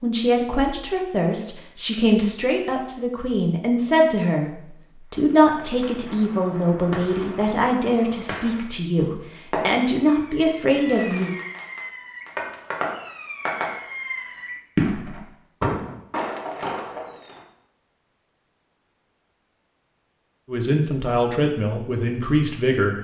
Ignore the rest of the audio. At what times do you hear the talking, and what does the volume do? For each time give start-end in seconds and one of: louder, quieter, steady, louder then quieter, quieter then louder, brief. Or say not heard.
0.0-11.3 steady
20.4-22.9 brief.